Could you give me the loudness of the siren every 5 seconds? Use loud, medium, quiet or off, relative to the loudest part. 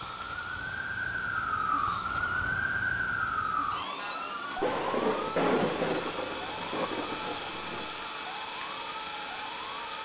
loud, medium.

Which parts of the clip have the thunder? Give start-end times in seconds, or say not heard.
4.5-8.0.